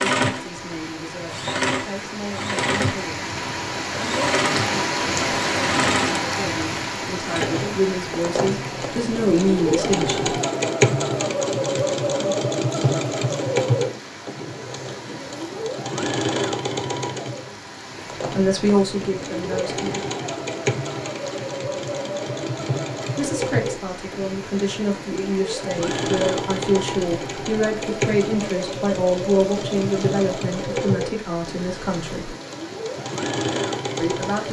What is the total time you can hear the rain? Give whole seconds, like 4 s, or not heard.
34 s.